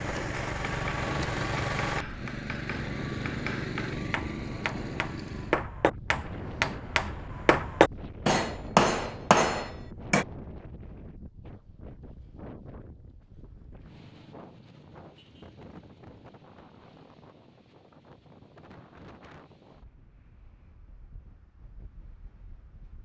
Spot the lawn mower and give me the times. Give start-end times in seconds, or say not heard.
0.0-5.7.